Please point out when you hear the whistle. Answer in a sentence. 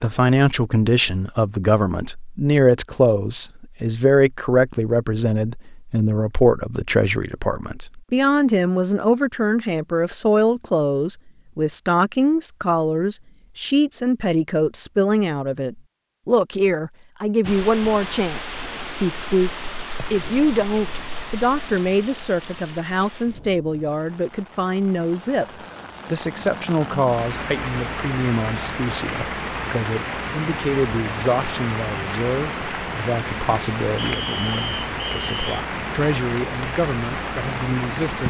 The whistle can be heard from 34.0 to 35.6 s.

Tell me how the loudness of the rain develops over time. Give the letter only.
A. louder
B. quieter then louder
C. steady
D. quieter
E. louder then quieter
B.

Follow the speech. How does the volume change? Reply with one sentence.
The volume of the speech goes down.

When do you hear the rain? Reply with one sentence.
You can hear the rain from 17.4 to 38.2 s.